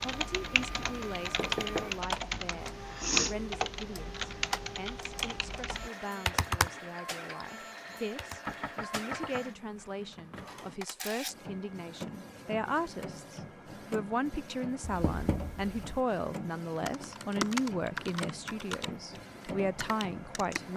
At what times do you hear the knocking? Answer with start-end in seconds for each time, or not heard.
1.4-1.9, 8.4-10.1, 14.8-16.0.